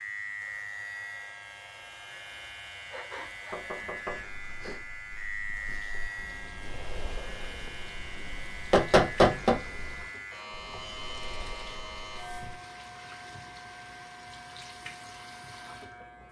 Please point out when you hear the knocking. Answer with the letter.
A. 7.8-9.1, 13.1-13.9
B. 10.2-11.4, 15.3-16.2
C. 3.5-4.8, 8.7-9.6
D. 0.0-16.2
C.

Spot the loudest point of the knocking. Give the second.
9 s.